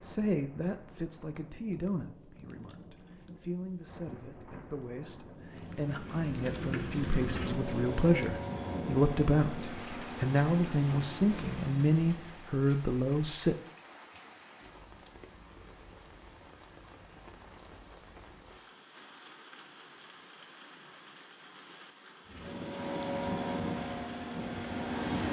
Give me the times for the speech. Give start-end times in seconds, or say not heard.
0.0-13.6.